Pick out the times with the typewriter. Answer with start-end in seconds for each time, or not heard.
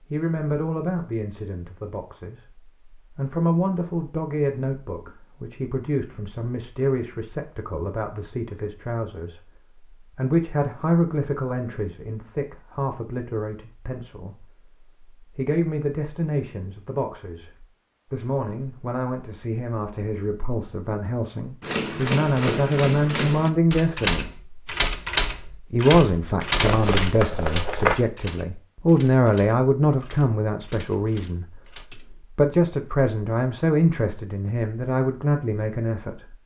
21.6-32.2.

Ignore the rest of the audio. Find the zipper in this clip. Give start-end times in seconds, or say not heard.
26.6-27.9.